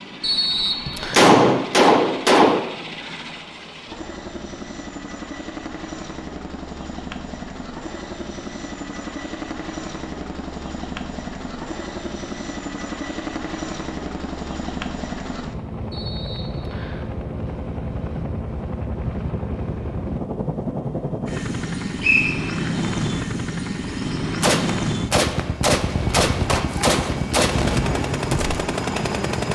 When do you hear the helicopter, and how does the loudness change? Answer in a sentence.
You can hear the helicopter from 0.0 to 29.5 s, getting louder.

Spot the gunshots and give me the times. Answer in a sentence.
The gunshots can be heard from 1.1 to 2.6 s and from 24.4 to 27.8 s.